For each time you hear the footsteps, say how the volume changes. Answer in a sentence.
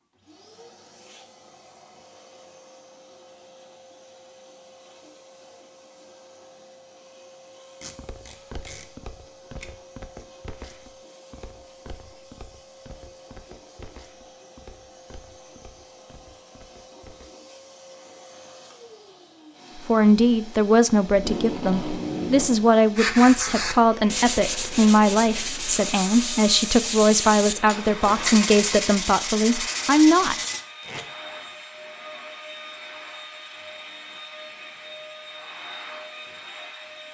You can hear the footsteps from 8.0 to 17.3 s, getting quieter.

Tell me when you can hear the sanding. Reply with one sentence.
The sanding can be heard from 22.9 to 30.6 s.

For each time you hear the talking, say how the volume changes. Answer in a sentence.
You can hear the talking from 19.9 to 30.4 s, at a steady volume.